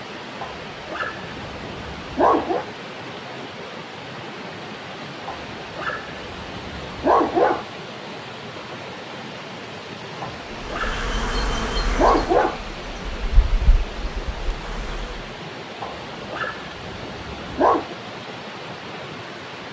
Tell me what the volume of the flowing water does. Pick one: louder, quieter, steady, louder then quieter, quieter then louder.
steady.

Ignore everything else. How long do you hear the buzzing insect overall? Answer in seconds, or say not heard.
5 s.